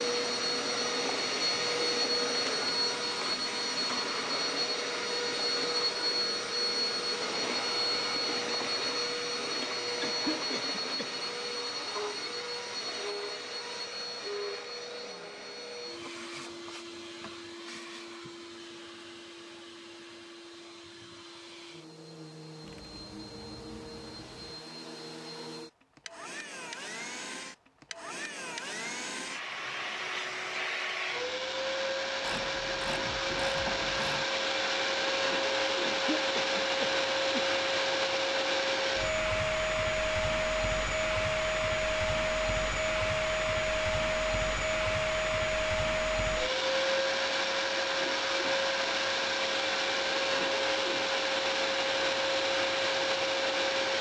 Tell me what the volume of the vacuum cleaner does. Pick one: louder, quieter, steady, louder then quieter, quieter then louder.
quieter then louder.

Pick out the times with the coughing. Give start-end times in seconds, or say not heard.
10.0-11.1, 35.8-37.5.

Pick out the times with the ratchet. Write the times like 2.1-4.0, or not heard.
22.6-24.6, 32.2-34.2.